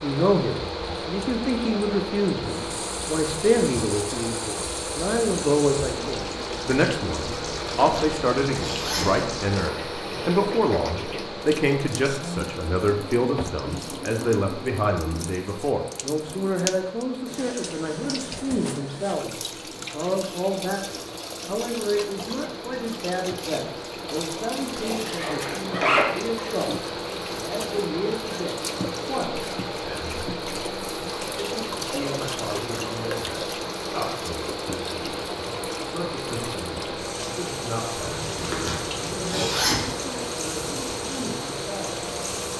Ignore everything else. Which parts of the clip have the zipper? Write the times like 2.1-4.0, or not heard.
7.3-9.2, 24.8-26.1, 38.0-39.9.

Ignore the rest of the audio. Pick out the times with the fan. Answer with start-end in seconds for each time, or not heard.
0.0-42.5.